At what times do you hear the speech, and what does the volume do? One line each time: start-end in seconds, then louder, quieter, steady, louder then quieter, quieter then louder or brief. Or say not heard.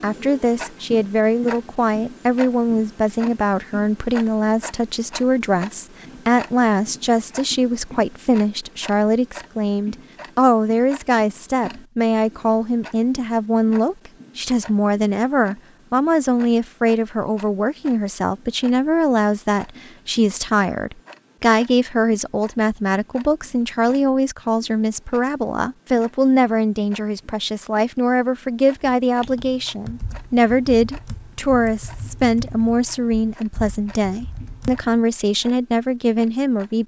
0.0-36.8 steady.